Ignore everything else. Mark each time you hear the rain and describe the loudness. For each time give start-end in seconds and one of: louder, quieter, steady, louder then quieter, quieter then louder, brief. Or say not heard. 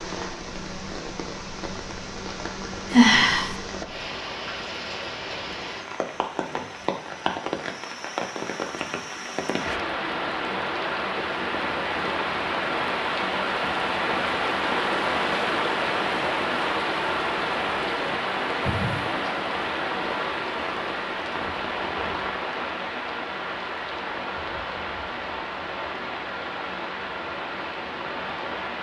0.0-28.7 louder then quieter.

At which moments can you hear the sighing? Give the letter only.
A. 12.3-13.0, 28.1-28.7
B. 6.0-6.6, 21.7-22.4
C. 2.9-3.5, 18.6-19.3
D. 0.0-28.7
C.